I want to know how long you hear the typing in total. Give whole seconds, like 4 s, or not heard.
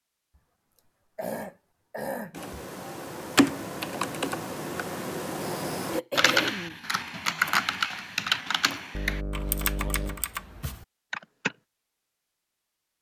9 s.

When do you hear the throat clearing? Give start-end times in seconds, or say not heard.
0.8-2.5, 5.9-6.8, 8.9-10.2.